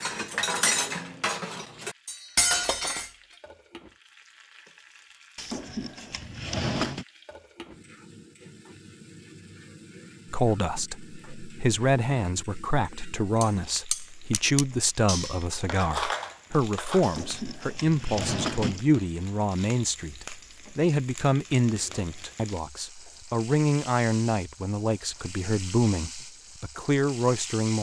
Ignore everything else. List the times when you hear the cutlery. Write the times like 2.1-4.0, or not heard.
0.0-3.1, 13.4-17.1.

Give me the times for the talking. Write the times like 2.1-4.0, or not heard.
10.3-27.7.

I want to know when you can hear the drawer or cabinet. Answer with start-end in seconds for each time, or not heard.
5.3-7.0, 17.0-18.9.